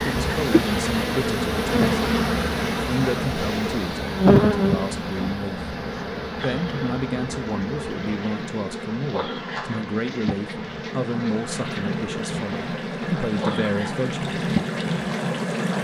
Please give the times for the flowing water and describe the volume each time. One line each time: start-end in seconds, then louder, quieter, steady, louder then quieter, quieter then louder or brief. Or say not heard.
0.0-15.7 quieter then louder.